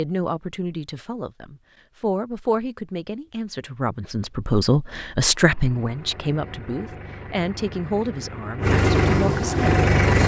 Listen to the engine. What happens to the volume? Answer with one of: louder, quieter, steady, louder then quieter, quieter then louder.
louder.